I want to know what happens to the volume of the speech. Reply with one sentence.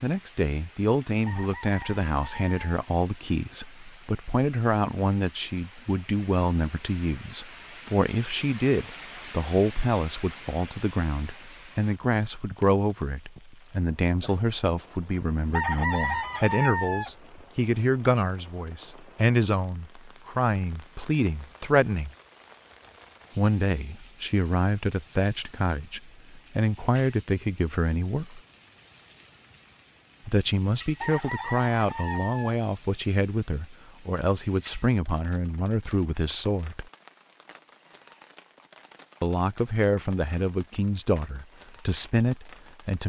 The loudness of the speech stays about the same.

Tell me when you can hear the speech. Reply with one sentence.
The speech can be heard from 0.0 to 22.1 s, from 23.4 to 28.4 s, from 30.2 to 36.9 s and from 39.2 to 43.0 s.